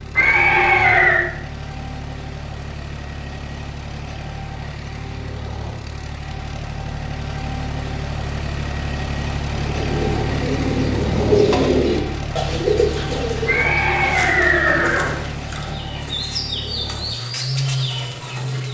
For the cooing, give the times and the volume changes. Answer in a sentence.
You can hear the cooing from 9.6 to 18.6 s, getting quieter.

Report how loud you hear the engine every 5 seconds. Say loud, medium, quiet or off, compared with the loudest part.
medium, loud, loud, loud.